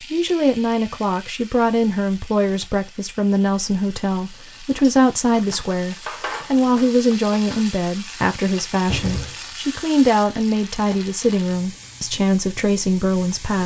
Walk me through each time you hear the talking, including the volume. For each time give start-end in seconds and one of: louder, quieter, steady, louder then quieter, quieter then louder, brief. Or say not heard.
0.0-13.6 steady.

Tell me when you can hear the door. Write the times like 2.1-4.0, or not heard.
8.1-9.4.